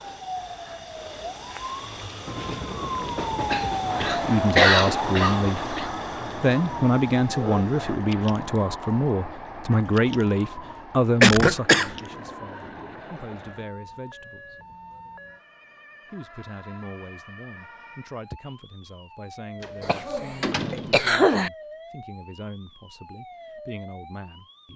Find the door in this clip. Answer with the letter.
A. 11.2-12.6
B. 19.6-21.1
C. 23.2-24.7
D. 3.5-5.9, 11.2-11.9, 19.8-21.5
B.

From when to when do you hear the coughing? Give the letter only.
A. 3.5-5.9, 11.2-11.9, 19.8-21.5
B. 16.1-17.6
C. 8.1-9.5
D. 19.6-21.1
A.